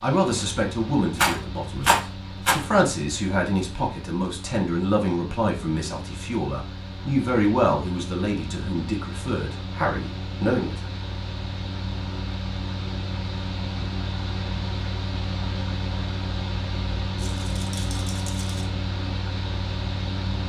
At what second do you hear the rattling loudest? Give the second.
2 s.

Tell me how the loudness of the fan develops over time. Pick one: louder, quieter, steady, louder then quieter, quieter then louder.
louder.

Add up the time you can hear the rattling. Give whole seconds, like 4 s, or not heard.
3 s.